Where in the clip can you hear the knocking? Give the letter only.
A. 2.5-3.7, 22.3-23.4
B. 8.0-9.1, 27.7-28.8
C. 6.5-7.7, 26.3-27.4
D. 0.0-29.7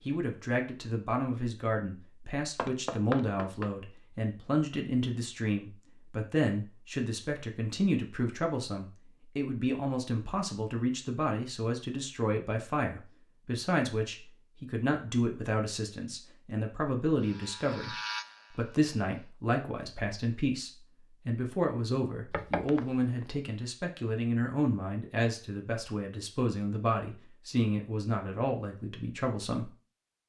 A.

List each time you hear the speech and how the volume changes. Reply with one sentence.
The speech can be heard from 0.0 to 29.7 s, at a steady volume.